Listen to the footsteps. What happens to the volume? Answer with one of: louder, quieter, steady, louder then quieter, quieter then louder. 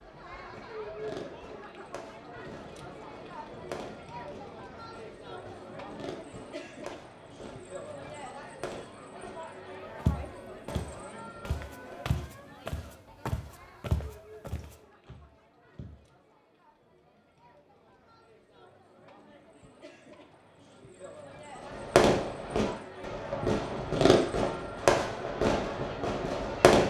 louder then quieter.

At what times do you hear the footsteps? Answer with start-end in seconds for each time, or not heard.
10.0-16.0.